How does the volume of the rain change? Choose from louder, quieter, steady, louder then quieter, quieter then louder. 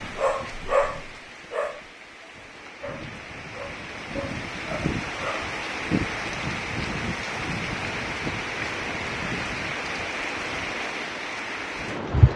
louder.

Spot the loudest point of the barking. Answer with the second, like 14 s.
1 s.